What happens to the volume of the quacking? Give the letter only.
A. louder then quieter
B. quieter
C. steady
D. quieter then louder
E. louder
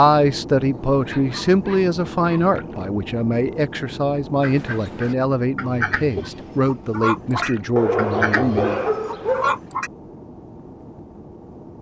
E.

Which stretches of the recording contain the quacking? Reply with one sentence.
You can hear the quacking from 4.4 to 9.9 s.